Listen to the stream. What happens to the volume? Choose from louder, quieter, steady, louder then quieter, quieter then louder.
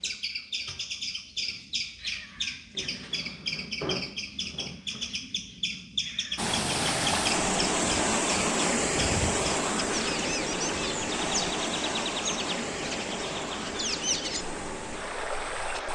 quieter.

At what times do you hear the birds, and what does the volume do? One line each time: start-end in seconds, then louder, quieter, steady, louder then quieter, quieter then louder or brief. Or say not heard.
0.0-15.9 steady.